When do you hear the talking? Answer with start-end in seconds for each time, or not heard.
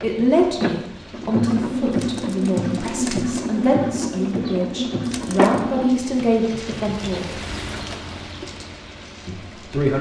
0.0-7.3, 9.2-9.9.